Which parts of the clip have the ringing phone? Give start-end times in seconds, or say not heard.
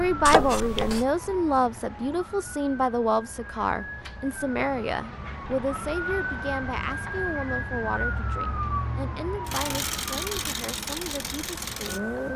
0.2-1.1.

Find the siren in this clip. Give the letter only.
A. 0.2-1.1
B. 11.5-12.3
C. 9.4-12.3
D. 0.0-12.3
D.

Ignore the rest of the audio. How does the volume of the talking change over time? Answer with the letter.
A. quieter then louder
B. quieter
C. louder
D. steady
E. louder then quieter
B.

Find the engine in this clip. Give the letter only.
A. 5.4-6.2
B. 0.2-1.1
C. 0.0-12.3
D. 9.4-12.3
D.